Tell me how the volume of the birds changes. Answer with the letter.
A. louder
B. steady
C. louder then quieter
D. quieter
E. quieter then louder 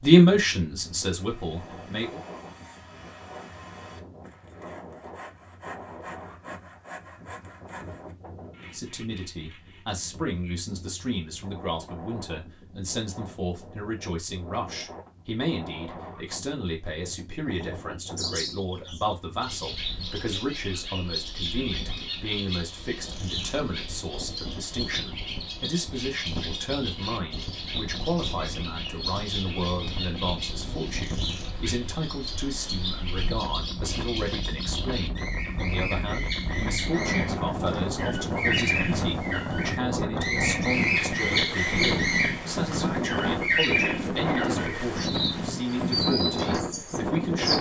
A.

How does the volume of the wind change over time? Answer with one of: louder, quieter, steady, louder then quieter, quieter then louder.
louder.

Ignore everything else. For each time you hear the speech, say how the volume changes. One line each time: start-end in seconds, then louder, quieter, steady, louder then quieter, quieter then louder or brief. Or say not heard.
0.0-2.2 brief
8.7-47.5 steady.